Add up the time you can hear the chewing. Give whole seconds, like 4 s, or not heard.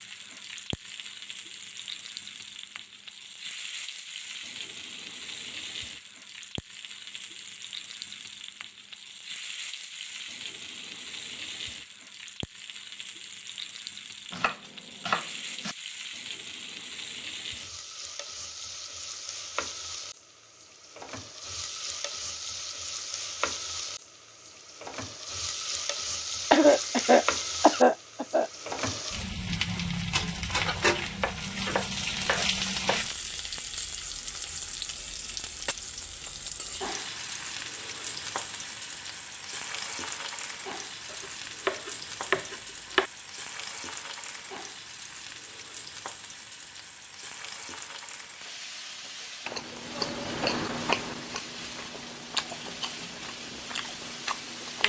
5 s.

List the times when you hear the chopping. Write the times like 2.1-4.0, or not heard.
14.3-15.8, 30.6-33.0, 41.1-43.1.